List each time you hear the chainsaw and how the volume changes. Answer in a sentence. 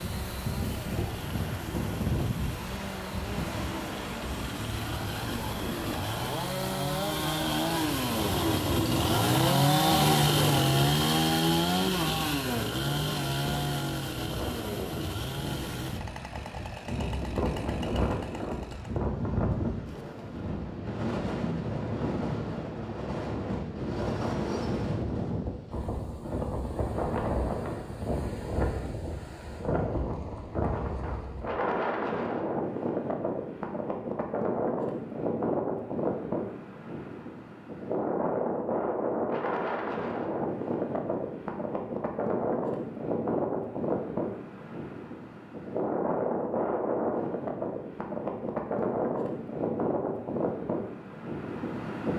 You can hear the chainsaw from 0.0 to 19.1 s, getting louder then quieter.